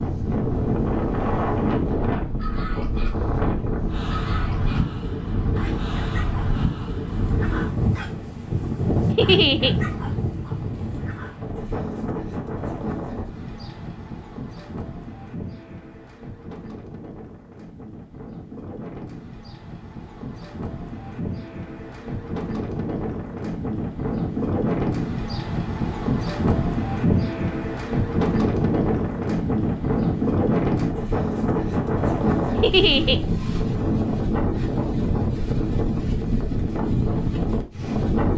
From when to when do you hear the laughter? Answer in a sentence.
You can hear the laughter from 9.2 to 9.8 s and from 32.6 to 33.2 s.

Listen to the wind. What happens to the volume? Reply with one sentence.
The loudness of the wind goes down, then up.